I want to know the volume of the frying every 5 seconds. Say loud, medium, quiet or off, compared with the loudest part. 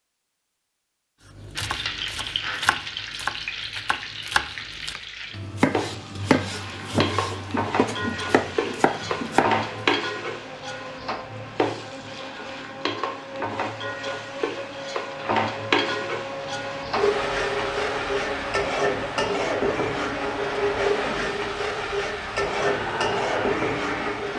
medium, loud, medium, loud, loud.